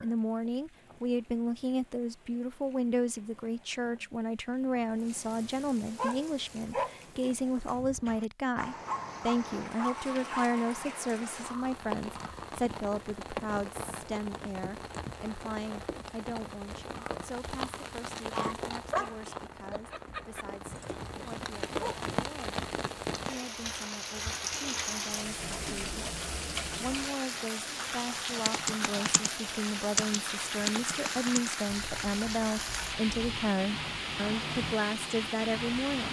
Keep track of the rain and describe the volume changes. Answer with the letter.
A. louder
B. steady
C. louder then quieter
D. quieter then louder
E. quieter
A.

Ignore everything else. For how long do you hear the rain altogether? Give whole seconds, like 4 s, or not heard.
36 s.